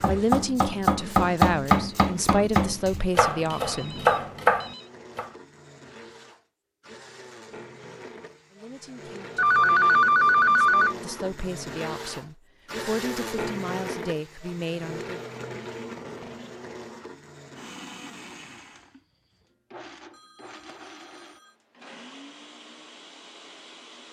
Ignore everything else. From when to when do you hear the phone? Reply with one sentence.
You can hear the phone from 3.5 to 4.9 s, from 9.3 to 10.9 s and from 20.1 to 21.6 s.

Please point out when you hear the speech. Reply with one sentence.
You can hear the speech from 0.1 to 4.0 s and from 8.5 to 15.1 s.